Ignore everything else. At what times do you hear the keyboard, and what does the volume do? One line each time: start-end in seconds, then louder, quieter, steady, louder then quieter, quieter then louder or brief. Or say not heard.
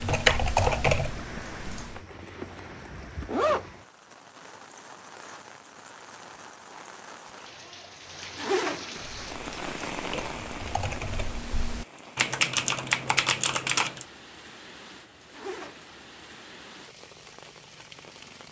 0.0-2.0 brief
8.9-14.1 louder.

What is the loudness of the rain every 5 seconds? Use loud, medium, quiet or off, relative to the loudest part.
loud, loud, loud, medium.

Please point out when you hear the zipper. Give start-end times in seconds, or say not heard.
1.9-3.7, 8.3-9.8, 15.3-15.9.